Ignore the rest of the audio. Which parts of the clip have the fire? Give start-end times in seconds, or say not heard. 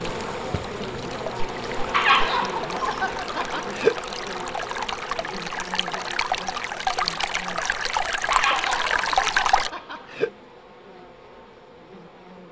not heard.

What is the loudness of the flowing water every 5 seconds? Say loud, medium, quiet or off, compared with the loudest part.
medium, loud, off.